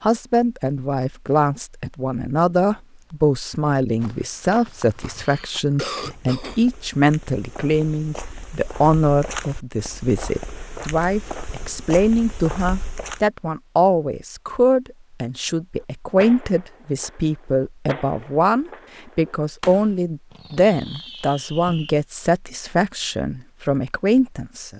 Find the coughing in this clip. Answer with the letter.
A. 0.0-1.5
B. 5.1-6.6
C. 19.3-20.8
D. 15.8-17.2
B.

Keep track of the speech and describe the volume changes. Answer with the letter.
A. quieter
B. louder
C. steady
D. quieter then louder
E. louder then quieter
C.